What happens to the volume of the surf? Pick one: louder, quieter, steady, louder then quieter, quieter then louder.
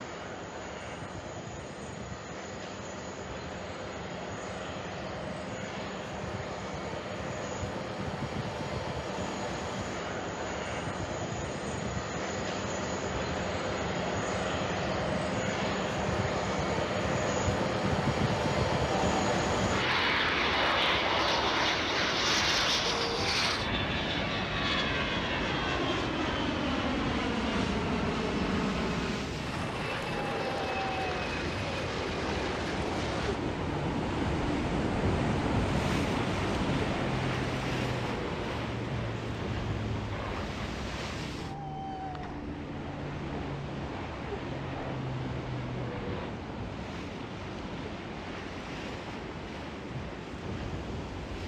louder then quieter.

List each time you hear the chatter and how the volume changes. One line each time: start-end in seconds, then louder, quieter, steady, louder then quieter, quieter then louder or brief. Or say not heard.
not heard.